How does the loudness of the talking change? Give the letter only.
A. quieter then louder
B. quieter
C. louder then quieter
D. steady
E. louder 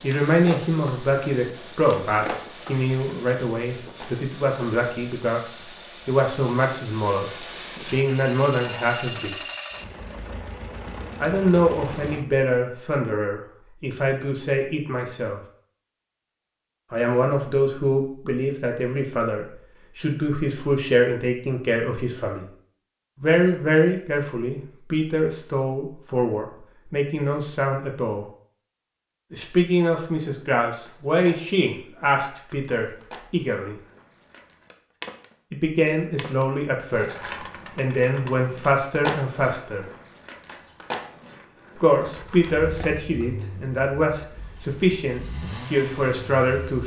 D.